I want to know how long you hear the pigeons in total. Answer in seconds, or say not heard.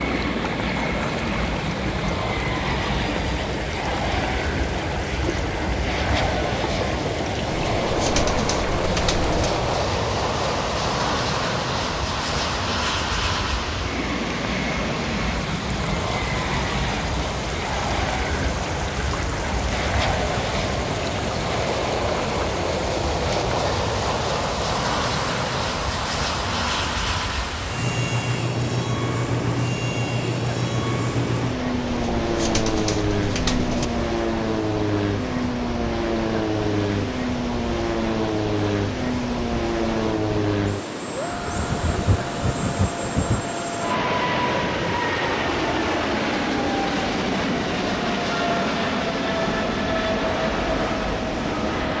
4 s.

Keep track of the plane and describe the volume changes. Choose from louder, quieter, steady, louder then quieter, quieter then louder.
steady.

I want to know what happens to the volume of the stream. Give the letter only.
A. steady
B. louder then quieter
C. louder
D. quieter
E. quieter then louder
A.